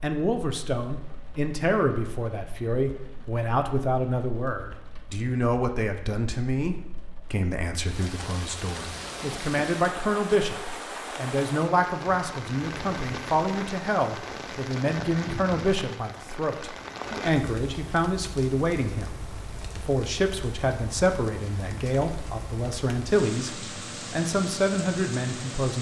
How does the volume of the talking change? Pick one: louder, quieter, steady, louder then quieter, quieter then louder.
steady.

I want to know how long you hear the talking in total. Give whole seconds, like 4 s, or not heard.
26 s.